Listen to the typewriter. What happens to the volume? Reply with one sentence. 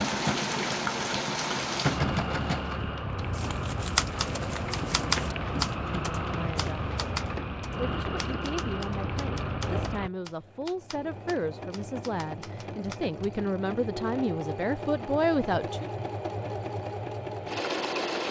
The loudness of the typewriter goes down.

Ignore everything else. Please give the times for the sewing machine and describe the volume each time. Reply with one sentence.
You can hear the sewing machine from 0.0 to 18.2 s, getting quieter then louder.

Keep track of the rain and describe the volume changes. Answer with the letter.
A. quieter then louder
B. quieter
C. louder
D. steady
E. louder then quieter
D.